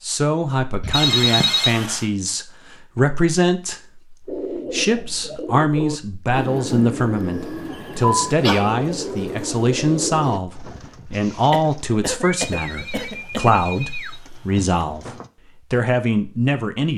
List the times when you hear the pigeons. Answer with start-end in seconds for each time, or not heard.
4.2-15.3.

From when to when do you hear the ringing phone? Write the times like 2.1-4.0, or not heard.
0.9-2.0, 12.4-14.7.